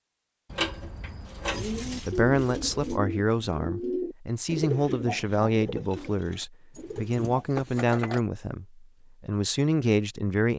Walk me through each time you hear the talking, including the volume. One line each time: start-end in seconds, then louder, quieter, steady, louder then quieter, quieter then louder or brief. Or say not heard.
1.5-10.5 steady.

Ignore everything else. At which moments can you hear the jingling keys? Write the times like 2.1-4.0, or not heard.
0.5-3.0, 6.7-8.2.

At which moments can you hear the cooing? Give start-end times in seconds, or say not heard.
1.4-7.5.